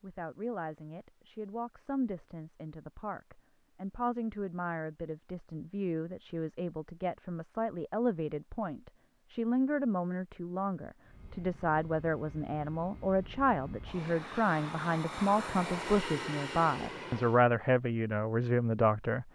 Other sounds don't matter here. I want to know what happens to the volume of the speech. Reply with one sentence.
The loudness of the speech goes up.